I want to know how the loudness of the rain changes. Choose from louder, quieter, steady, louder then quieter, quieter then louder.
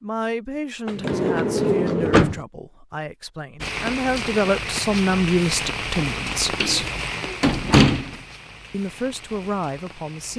quieter.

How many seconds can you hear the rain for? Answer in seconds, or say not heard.
7 s.